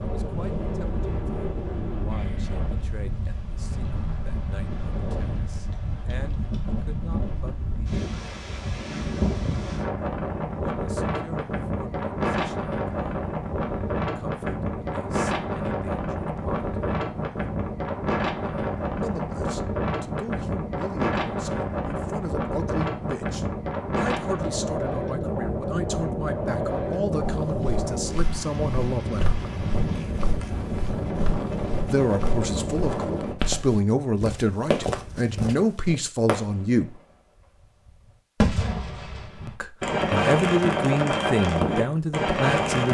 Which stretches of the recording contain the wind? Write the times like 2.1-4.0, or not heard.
0.0-33.4.